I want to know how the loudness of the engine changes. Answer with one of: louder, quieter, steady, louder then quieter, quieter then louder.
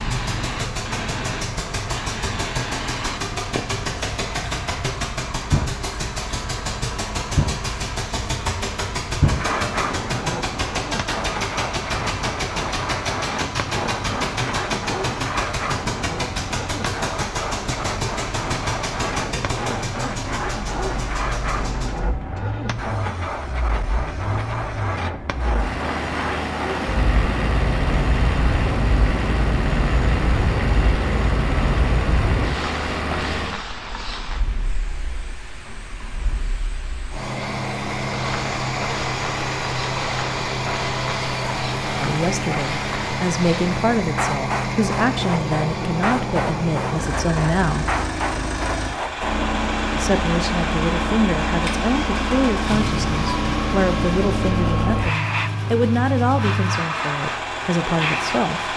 steady.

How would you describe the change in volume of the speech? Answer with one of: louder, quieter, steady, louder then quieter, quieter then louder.
steady.